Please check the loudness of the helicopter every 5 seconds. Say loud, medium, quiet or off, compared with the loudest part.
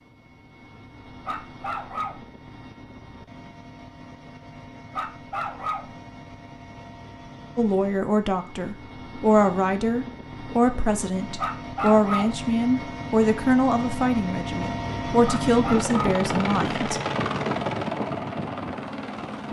quiet, quiet, medium, loud.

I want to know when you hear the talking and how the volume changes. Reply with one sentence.
The talking can be heard from 7.5 to 17.0 s, at a steady volume.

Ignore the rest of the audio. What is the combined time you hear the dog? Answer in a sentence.
You can hear the dog for 4 seconds altogether.